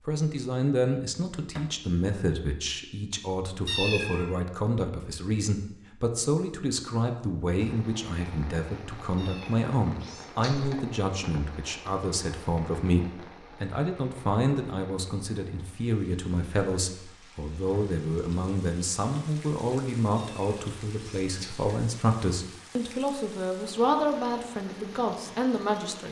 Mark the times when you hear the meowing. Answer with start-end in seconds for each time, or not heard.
3.6-4.3, 9.2-10.8, 20.1-21.8.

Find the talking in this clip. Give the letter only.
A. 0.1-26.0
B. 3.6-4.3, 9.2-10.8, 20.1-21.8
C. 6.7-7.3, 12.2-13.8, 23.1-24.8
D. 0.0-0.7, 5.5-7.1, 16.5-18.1
A.